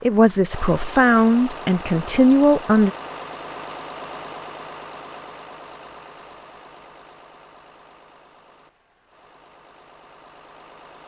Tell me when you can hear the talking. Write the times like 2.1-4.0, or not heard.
0.0-2.9.